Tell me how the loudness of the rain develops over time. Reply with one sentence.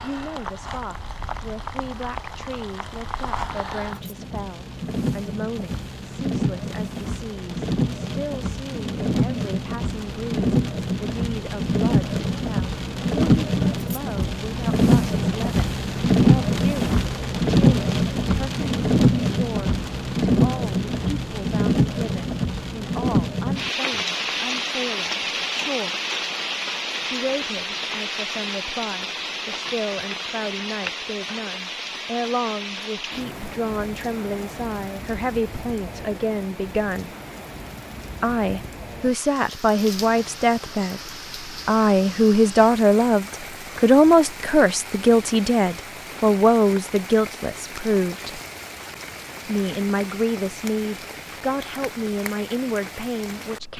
The volume of the rain goes up, then down.